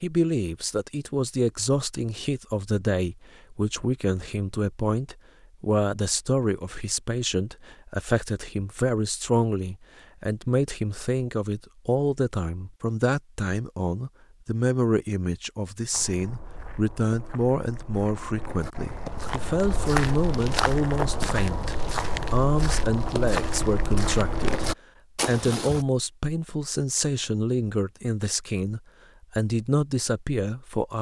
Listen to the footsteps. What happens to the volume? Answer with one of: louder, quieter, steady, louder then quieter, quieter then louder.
louder.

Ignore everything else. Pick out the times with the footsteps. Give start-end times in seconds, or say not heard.
15.9-25.9.